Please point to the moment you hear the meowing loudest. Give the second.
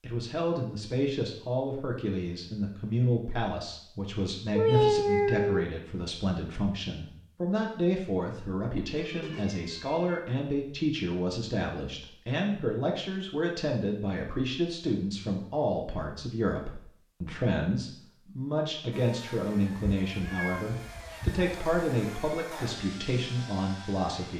5 s.